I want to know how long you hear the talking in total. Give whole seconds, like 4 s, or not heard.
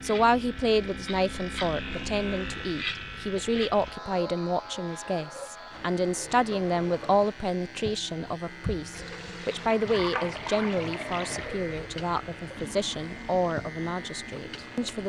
15 s.